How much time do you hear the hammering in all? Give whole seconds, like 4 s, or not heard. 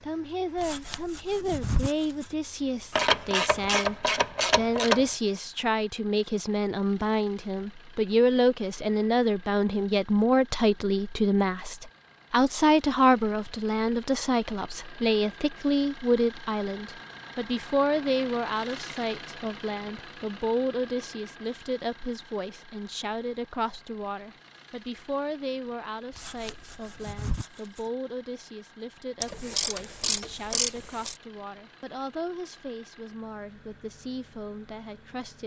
not heard.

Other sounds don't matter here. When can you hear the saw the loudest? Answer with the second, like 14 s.
2 s.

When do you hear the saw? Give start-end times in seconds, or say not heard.
0.6-2.2, 26.1-27.8.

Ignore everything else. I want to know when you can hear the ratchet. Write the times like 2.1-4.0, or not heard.
2.9-5.1, 29.2-31.1.